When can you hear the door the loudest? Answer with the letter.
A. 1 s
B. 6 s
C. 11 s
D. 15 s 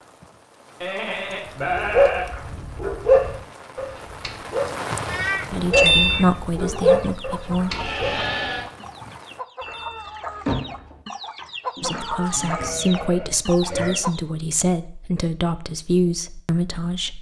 B.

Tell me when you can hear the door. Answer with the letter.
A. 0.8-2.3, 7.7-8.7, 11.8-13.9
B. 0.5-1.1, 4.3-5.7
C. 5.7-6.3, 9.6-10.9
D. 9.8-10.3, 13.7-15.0
C.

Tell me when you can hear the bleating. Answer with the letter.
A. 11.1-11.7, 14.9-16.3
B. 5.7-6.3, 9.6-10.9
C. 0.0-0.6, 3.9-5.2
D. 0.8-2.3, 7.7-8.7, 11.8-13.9
D.